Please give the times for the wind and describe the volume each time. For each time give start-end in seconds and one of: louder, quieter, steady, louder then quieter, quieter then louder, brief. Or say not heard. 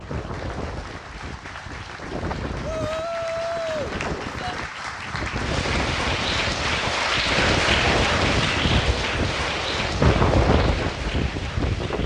0.0-12.0 louder.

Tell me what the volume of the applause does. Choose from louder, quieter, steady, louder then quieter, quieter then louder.
louder then quieter.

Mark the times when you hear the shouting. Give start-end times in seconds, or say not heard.
2.6-4.5.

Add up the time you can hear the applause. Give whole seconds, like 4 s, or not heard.
12 s.